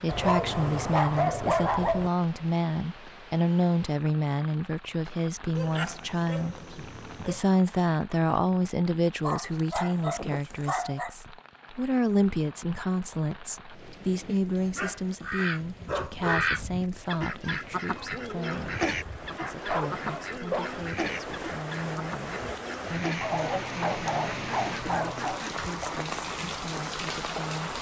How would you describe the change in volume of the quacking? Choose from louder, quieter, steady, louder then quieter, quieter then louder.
quieter.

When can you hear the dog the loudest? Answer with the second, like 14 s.
1 s.